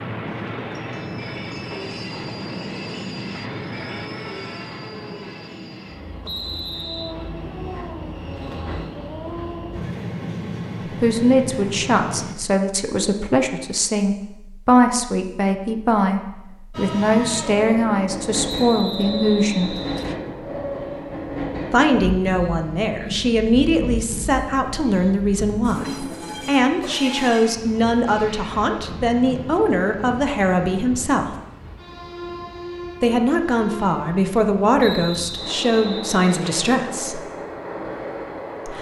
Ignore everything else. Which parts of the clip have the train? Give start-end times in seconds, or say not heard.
0.0-12.3, 16.7-38.7.